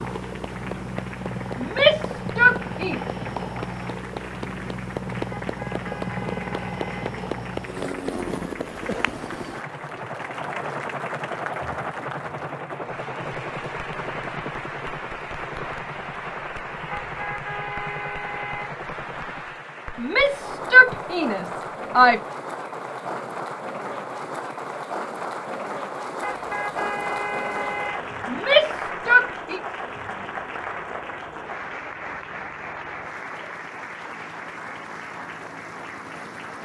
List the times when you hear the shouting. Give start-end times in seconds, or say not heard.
1.6-3.0, 19.9-22.2, 28.2-29.6.